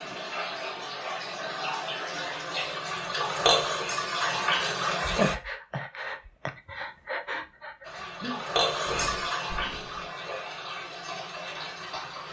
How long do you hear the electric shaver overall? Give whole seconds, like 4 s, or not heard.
not heard.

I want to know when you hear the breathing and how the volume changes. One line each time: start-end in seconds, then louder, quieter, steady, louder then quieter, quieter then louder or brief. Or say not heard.
4.2-10.1 quieter.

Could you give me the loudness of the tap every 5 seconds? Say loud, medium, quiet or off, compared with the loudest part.
loud, loud, medium.